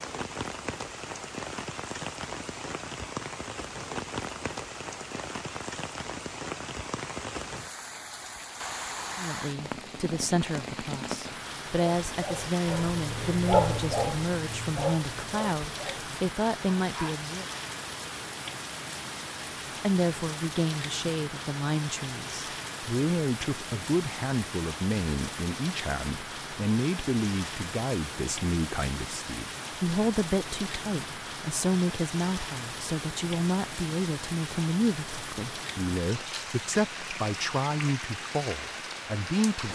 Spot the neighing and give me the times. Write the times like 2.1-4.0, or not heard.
not heard.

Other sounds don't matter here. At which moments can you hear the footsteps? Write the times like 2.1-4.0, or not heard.
not heard.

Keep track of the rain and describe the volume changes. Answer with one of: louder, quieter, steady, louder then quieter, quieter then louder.
steady.